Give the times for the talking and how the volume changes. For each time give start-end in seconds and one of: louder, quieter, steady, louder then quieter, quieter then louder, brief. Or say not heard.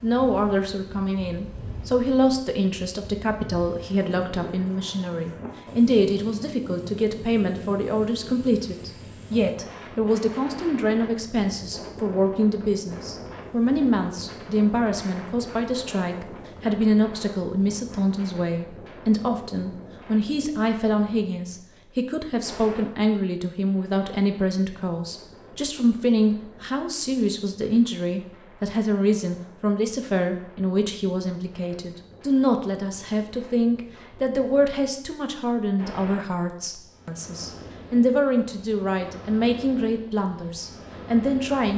0.0-41.7 steady.